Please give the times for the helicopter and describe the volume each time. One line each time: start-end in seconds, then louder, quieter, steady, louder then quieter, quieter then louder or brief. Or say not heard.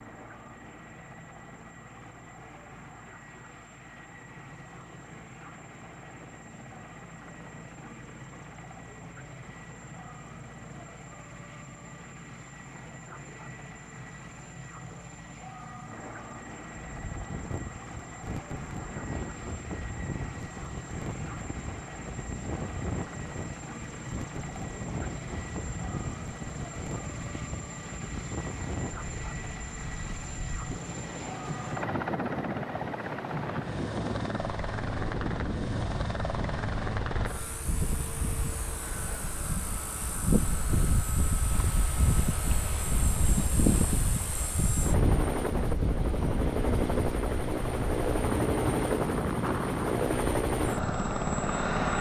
0.0-51.9 louder.